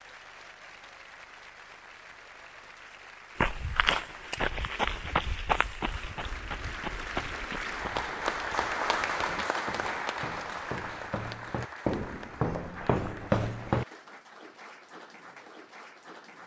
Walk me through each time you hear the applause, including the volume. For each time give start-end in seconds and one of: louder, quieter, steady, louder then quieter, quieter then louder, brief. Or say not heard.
0.0-16.4 louder then quieter.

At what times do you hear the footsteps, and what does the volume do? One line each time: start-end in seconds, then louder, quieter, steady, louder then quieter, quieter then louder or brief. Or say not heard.
3.4-13.8 quieter then louder.